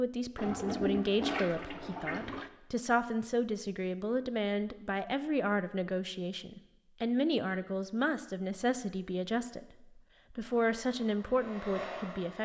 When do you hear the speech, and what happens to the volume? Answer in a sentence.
You can hear the speech from 0.0 to 12.4 s, at a steady volume.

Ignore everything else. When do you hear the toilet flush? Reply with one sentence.
The toilet flush can be heard from 0.3 to 2.5 s.